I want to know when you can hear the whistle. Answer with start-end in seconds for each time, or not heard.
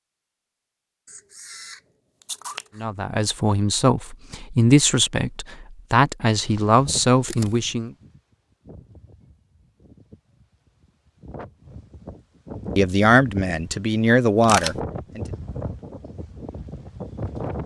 not heard.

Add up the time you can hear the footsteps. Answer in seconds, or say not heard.
not heard.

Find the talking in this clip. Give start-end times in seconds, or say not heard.
2.8-7.9, 12.8-15.2.